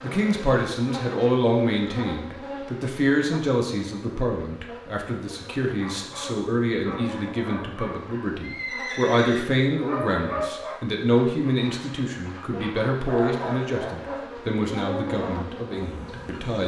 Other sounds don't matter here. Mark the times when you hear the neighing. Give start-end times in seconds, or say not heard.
8.4-9.5.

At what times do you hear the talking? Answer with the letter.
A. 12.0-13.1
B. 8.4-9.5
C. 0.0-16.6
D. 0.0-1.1
C.